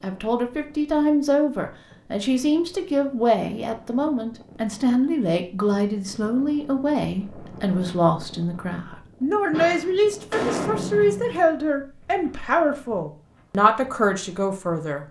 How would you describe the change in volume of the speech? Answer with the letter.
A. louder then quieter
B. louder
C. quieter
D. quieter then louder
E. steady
E.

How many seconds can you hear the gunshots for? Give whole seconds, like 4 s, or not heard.
2 s.